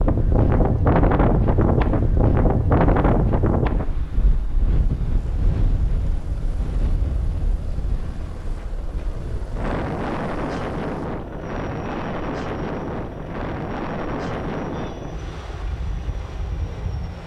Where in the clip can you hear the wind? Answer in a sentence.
The wind can be heard from 0.0 to 17.2 s.